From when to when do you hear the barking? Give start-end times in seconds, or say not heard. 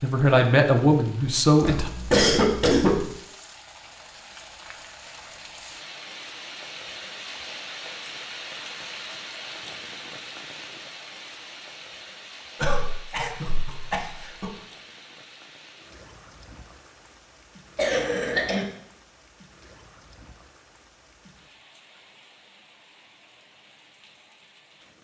not heard.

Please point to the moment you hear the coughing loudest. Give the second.
2 s.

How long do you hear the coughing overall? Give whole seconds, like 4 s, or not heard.
4 s.